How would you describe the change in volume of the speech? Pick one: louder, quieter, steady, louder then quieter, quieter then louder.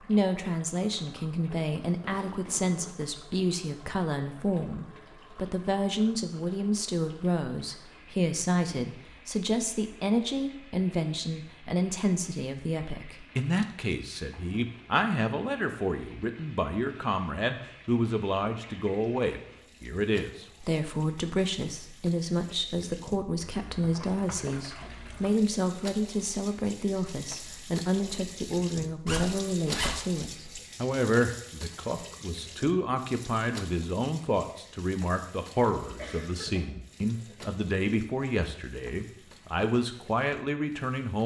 steady.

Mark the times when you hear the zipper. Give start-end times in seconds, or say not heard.
1.9-2.9, 29.1-29.9.